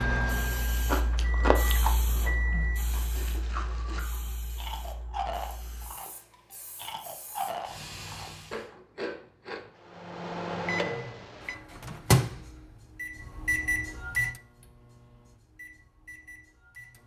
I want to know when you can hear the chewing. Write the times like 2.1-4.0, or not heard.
0.8-9.7.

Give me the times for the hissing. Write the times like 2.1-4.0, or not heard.
0.1-8.7.